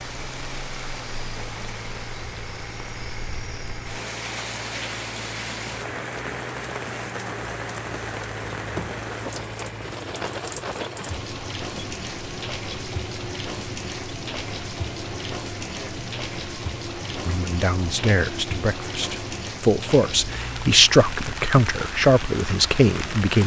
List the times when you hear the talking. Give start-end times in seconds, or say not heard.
17.2-23.4.